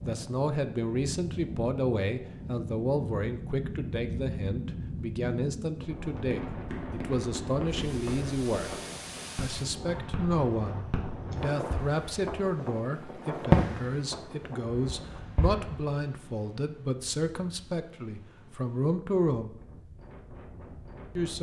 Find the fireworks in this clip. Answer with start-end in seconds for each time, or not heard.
6.2-12.3, 13.5-15.8.